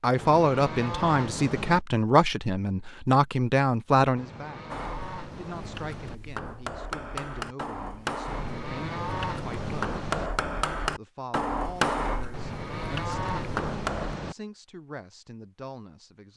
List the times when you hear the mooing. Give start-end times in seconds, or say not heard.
0.1-1.8, 4.2-6.2, 8.2-10.3, 12.3-14.3.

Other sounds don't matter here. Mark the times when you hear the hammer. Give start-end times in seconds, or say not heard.
4.7-14.2.